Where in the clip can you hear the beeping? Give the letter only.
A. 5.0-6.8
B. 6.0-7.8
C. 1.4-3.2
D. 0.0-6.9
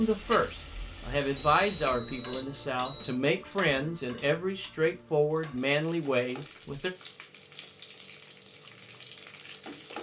C.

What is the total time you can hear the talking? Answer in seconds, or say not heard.
7 s.